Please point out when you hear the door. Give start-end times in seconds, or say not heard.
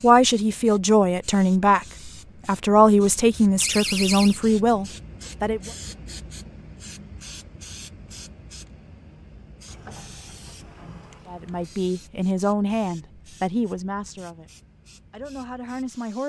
3.6-4.4, 9.7-11.7.